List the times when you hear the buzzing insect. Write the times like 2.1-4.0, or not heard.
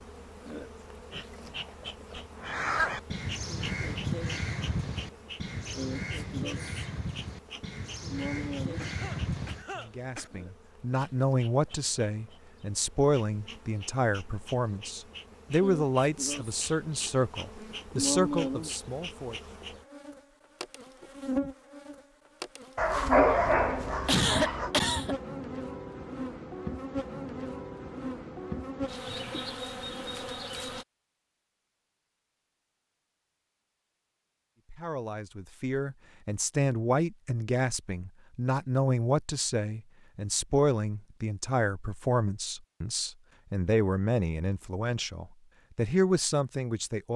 0.0-30.9.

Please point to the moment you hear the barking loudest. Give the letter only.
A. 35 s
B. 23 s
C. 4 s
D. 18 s
B.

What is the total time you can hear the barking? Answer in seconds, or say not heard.
2 s.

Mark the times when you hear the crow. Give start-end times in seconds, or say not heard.
2.4-9.7.